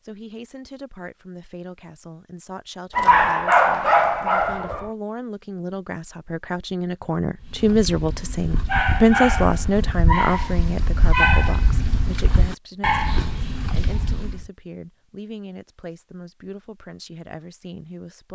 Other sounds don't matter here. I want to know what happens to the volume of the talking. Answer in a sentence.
The volume of the talking goes up, then down.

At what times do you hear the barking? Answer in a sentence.
The barking can be heard from 3.0 to 4.9 s and from 7.4 to 14.5 s.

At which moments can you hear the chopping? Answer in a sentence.
You can't hear the chopping here.